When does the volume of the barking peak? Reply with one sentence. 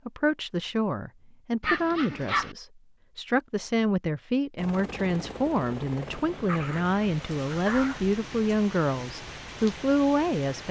The loudest moment of the barking is at 2 seconds.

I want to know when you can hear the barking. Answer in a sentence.
You can hear the barking from 1.6 to 2.5 s and from 6.5 to 8.0 s.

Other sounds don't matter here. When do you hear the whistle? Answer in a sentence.
The whistle can't be heard in this clip.